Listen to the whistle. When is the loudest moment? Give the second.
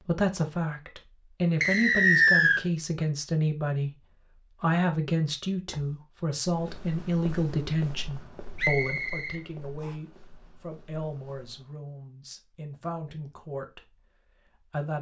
2 s.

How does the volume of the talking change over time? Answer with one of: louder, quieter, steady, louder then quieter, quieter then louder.
quieter.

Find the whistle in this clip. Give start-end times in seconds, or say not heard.
1.6-2.6, 8.6-9.9.